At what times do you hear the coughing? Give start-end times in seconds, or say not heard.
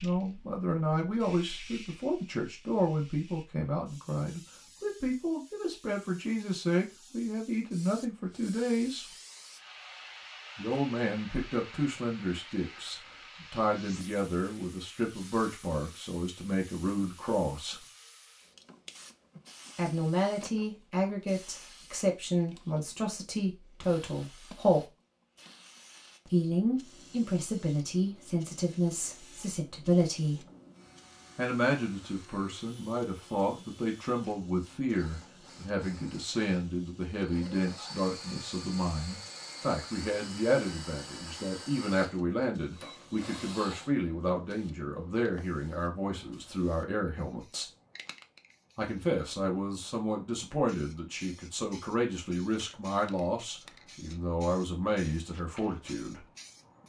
not heard.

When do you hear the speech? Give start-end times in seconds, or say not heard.
0.0-9.1, 10.6-17.9, 19.8-24.9, 26.2-30.4, 31.4-47.7, 48.8-56.2.